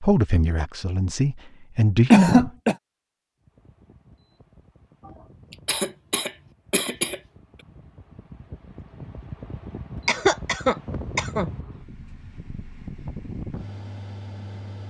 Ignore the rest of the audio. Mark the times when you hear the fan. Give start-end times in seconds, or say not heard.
3.4-14.8.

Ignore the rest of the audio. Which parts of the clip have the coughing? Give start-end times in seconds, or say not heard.
2.1-2.8, 5.5-7.2, 10.1-11.5.